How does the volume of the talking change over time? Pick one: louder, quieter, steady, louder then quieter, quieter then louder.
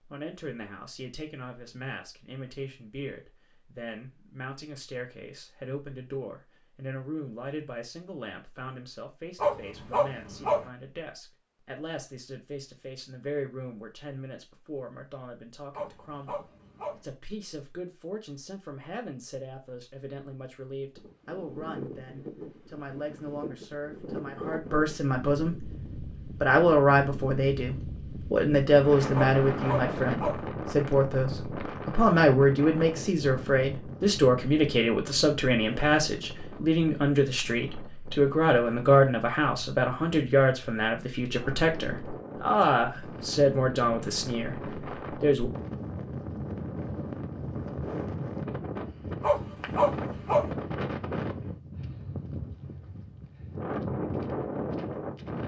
louder.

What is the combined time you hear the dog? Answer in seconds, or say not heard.
5 s.